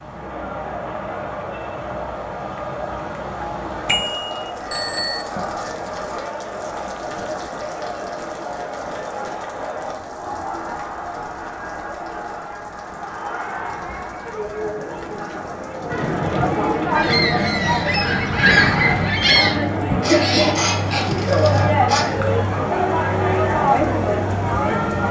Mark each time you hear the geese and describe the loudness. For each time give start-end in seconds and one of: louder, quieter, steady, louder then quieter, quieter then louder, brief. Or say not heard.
16.9-22.1 louder then quieter.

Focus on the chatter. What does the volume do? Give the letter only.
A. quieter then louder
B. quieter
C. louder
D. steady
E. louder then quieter
C.